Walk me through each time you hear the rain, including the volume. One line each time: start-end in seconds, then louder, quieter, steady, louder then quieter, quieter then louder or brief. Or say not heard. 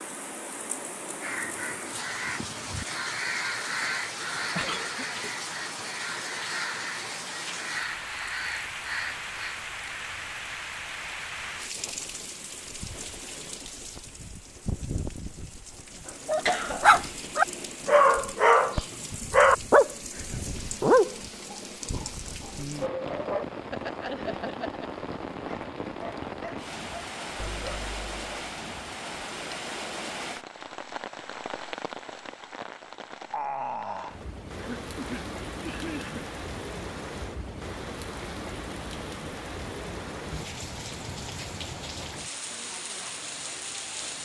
0.0-44.1 steady.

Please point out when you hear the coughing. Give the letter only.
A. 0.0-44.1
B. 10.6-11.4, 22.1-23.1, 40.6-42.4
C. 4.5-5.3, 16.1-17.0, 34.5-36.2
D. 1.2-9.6
C.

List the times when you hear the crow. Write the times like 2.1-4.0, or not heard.
1.2-9.6.